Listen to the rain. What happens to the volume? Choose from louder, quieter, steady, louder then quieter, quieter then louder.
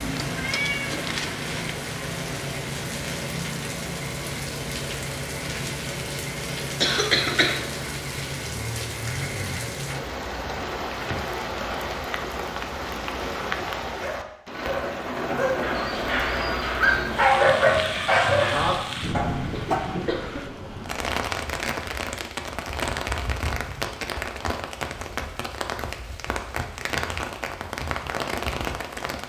steady.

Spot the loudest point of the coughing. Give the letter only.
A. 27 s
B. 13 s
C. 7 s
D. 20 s
C.